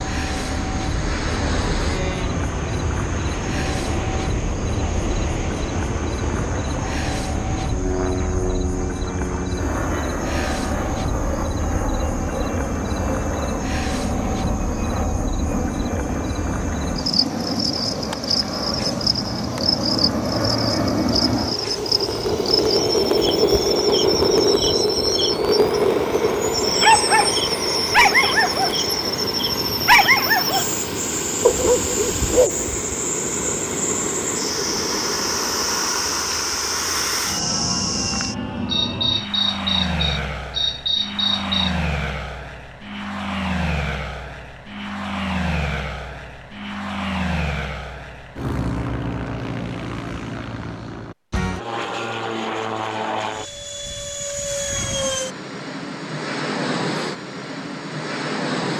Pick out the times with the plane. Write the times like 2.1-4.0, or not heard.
0.0-58.7.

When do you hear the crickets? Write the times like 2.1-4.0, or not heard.
0.0-41.8.